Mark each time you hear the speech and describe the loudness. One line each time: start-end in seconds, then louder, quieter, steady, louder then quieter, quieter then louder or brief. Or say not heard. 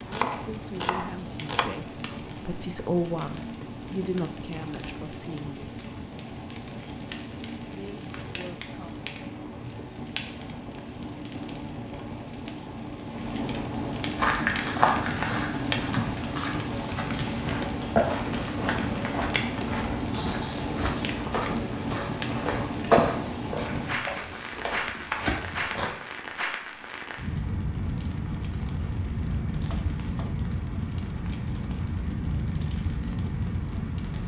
0.1-5.8 louder then quieter
7.8-9.1 brief.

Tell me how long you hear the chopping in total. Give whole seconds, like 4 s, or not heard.
3 s.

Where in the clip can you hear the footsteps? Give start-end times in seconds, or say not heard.
14.1-26.0.